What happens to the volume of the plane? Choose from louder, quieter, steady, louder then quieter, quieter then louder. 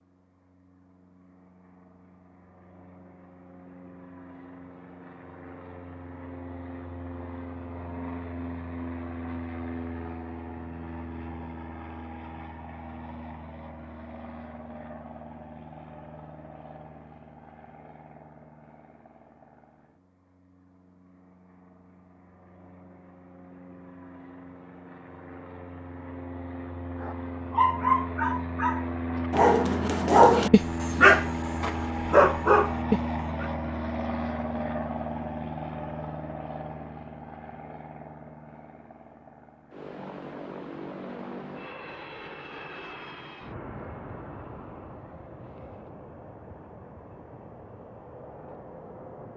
louder then quieter.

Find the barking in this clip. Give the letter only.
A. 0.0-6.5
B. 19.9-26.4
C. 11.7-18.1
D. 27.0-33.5
D.